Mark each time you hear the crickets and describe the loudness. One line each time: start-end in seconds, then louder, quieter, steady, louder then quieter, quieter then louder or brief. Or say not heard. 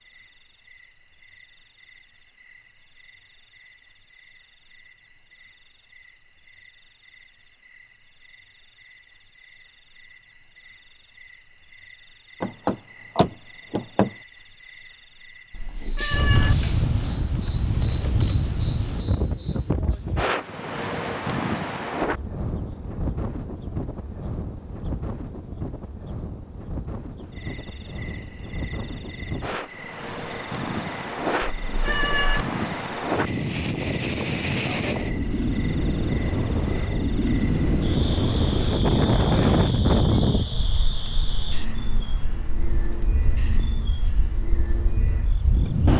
0.0-45.9 louder.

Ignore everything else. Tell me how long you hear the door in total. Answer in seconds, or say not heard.
2 s.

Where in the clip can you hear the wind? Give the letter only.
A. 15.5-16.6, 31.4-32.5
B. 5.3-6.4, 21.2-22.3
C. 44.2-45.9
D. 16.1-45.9
D.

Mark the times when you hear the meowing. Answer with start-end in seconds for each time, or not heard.
15.5-16.6, 31.4-32.5.